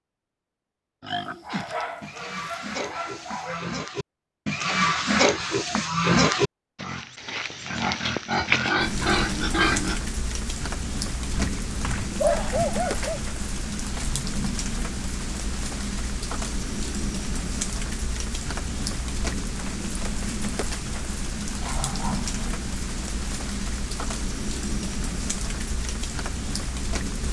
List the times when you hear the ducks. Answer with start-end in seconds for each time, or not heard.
not heard.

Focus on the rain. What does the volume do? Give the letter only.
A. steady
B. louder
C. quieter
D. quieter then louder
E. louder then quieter
A.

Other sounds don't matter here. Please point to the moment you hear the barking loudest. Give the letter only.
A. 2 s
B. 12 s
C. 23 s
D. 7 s
B.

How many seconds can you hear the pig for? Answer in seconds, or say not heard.
9 s.